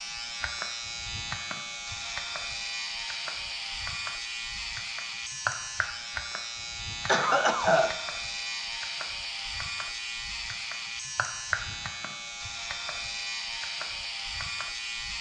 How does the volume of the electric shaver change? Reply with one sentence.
The volume of the electric shaver stays about the same.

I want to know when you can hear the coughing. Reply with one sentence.
The coughing can be heard from 7.0 to 8.0 s.